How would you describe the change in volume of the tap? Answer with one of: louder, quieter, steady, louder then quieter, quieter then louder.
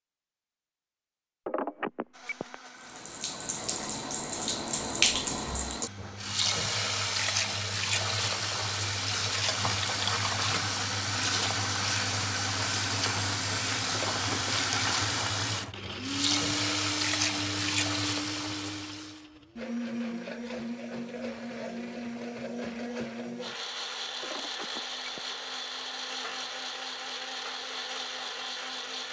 steady.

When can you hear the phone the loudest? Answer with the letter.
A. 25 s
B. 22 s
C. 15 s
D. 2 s
D.